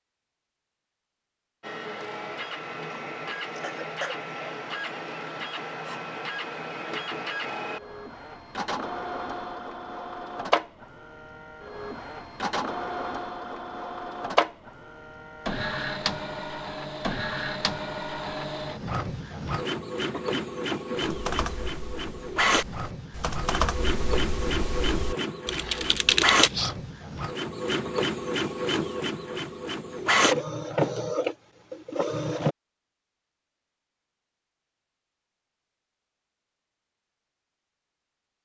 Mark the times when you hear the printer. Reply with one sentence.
The printer can be heard from 1.6 to 32.5 s.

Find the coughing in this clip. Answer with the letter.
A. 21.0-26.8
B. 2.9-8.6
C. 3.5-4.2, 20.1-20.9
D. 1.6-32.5
C.